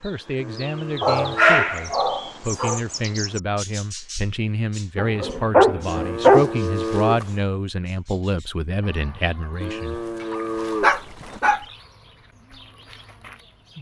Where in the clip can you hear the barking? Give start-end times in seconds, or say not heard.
1.0-2.8, 5.0-6.5, 10.3-11.7.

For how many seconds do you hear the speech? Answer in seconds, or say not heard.
10 s.